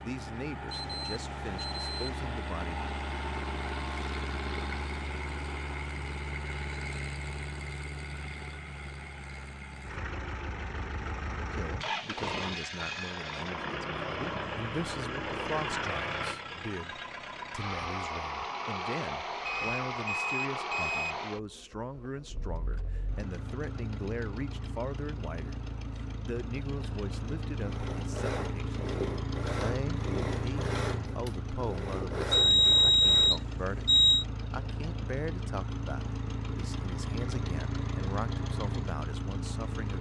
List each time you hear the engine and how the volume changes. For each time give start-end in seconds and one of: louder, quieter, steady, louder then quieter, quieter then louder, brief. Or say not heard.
0.0-39.9 steady.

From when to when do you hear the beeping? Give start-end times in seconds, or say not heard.
0.7-2.2, 19.4-21.1, 32.3-34.2.